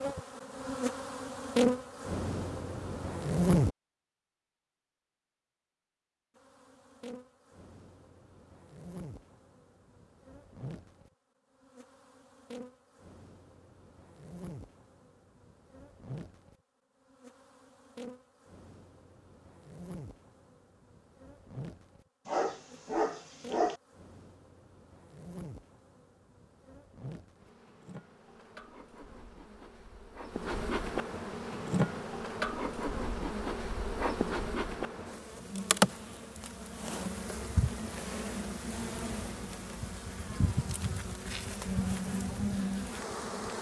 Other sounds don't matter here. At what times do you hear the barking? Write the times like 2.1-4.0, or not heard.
22.2-23.8.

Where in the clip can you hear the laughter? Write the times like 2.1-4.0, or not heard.
not heard.